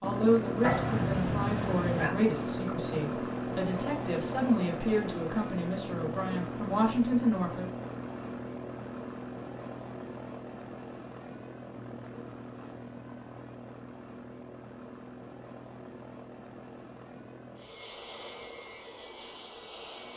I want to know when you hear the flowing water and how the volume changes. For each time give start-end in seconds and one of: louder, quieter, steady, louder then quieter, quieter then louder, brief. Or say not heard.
not heard.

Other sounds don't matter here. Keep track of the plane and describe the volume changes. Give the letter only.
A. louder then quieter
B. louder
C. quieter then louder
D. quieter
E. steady
D.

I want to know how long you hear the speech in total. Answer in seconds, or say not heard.
8 s.